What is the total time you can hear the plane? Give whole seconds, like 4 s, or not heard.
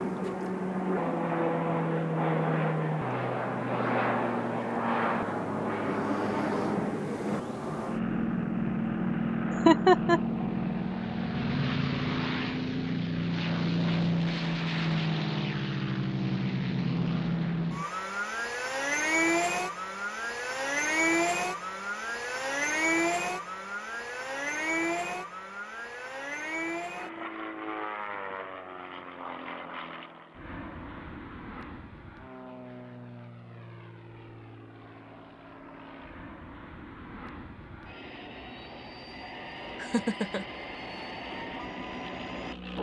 43 s.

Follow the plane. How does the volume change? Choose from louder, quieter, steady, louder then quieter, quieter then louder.
quieter.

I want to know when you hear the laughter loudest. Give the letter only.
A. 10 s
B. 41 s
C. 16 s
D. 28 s
A.